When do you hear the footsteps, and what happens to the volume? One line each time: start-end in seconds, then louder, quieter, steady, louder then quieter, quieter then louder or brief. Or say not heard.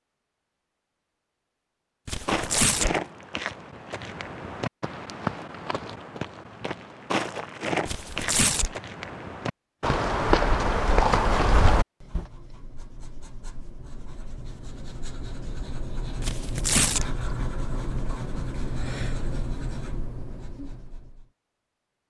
2.2-12.2 louder.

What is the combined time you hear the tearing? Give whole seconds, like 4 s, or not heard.
3 s.